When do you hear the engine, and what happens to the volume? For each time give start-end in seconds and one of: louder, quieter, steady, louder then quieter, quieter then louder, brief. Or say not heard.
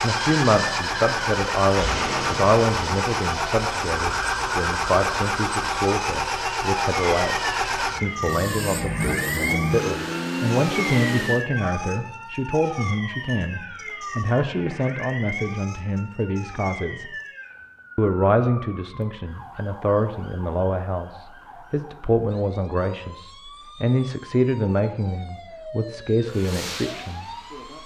0.0-11.4 steady
26.2-27.8 brief.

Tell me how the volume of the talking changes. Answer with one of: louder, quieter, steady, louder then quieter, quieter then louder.
steady.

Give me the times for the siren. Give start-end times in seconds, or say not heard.
0.2-27.8.